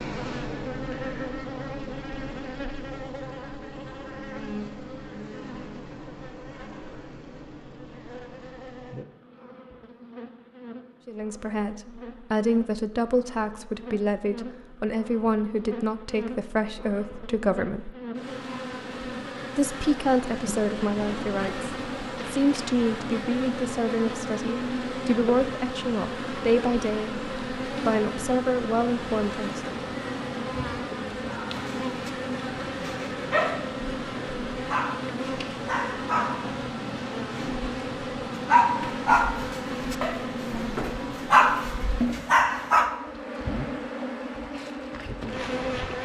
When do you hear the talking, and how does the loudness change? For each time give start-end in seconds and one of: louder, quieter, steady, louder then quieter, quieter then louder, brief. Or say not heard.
11.1-17.9 steady
19.6-29.7 steady.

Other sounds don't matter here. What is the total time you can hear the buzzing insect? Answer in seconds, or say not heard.
46 s.